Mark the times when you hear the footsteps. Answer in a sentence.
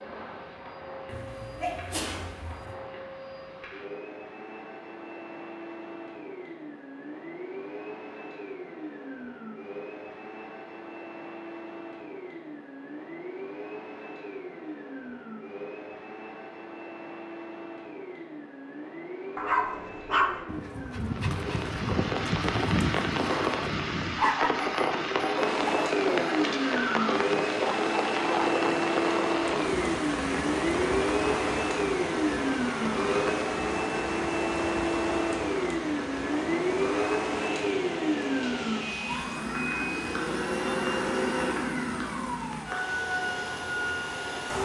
The footsteps can't be heard in this clip.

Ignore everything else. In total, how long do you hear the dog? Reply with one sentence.
You can hear the dog for 9 seconds altogether.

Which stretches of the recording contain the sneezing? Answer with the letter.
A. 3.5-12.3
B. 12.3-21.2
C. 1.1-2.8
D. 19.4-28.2
C.